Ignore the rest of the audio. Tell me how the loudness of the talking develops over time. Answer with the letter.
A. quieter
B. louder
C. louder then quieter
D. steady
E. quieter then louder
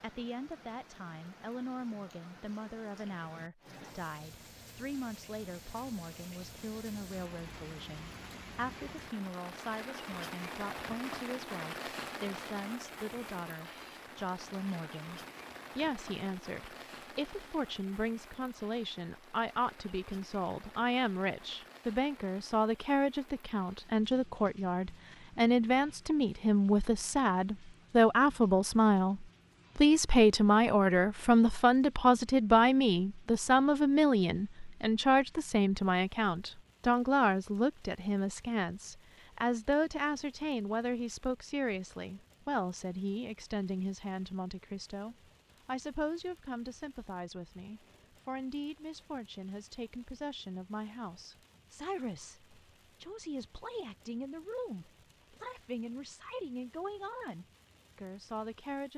C.